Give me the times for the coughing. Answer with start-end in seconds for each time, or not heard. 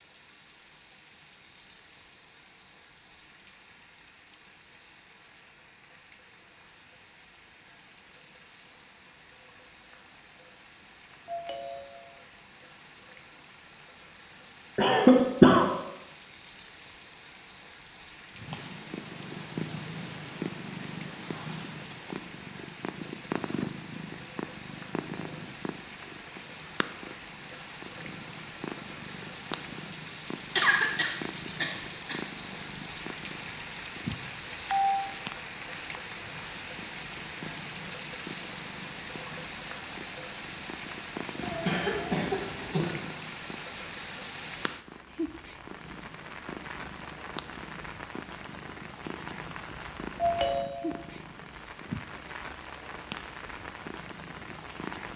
14.8-15.7, 30.6-32.2, 41.4-43.0.